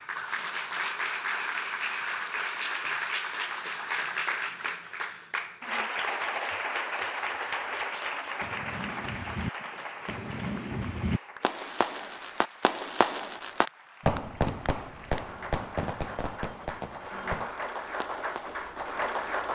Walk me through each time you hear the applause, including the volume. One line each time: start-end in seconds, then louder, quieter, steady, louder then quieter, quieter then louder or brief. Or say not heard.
0.0-19.5 quieter then louder.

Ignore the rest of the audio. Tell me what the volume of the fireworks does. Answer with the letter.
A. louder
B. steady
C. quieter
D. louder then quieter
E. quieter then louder
D.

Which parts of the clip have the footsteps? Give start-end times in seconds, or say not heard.
not heard.